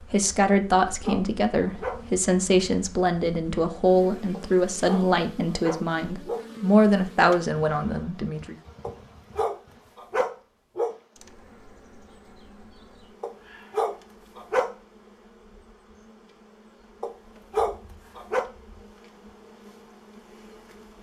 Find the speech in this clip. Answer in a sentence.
The speech can be heard from 0.0 to 8.6 s.